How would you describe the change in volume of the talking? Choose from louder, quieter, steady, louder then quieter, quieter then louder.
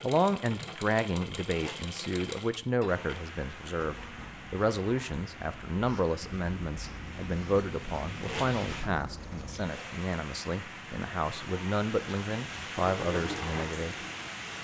steady.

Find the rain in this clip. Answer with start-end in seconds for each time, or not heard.
2.9-14.5.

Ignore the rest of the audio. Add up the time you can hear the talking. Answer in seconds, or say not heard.
14 s.